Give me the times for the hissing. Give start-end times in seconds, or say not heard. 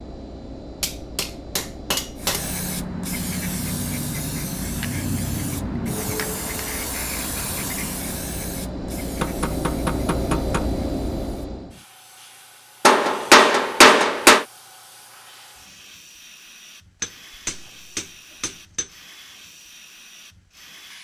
2.1-20.9.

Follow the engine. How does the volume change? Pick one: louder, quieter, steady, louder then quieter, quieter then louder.
louder.